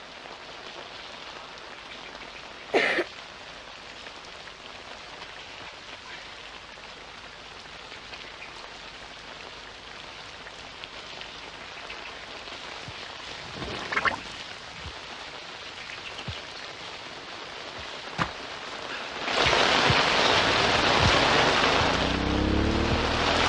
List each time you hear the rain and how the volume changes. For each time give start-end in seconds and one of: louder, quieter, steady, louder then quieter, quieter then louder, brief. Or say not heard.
0.0-23.4 louder.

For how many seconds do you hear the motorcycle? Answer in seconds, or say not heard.
3 s.